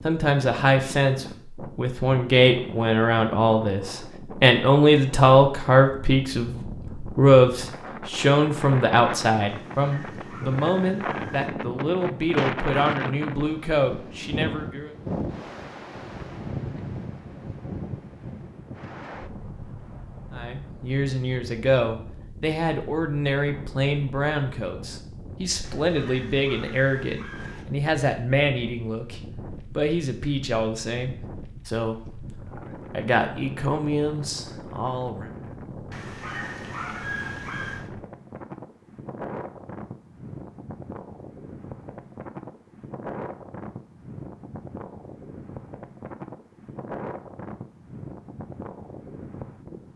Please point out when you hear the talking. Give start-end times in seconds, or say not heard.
0.0-14.9, 20.4-35.3.